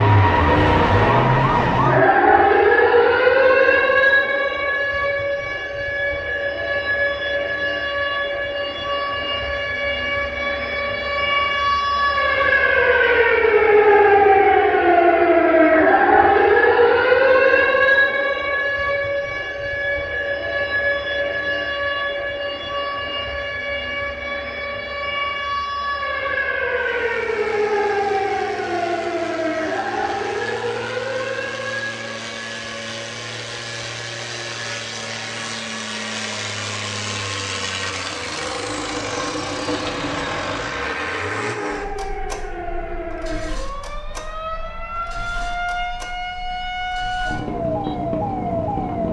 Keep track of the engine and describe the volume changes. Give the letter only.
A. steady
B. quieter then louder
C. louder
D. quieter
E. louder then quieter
E.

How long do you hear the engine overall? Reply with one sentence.
The engine can be heard for 22 seconds in total.